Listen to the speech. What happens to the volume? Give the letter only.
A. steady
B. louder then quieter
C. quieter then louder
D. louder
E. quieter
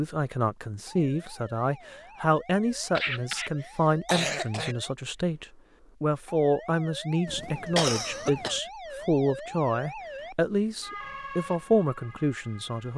A.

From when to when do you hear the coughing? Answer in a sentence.
The coughing can be heard from 3.0 to 4.8 s and from 7.2 to 8.6 s.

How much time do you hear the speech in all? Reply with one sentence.
The speech can be heard for 13 seconds in total.